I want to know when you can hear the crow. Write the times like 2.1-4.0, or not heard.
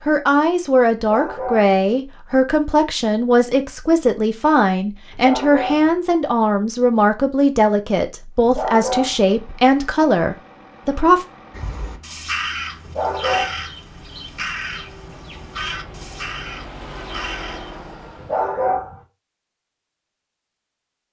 11.5-17.8.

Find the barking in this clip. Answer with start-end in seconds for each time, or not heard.
0.9-1.8, 5.1-6.0, 8.4-9.3, 12.8-13.7, 18.1-19.1.